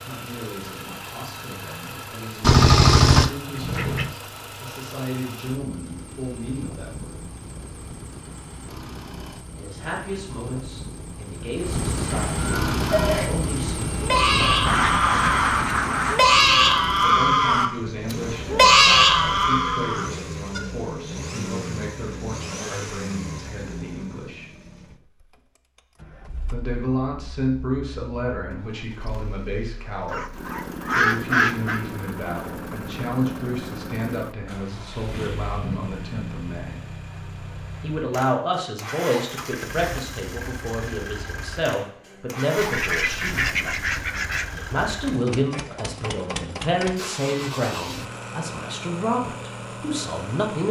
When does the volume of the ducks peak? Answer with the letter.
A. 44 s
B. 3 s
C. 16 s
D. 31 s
B.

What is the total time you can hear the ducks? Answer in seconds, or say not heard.
7 s.